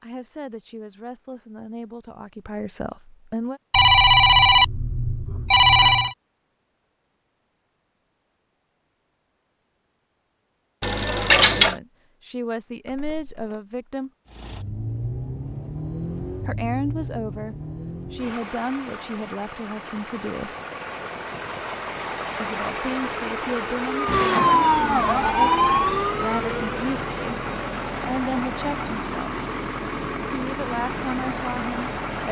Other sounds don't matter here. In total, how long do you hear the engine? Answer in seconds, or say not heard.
18 s.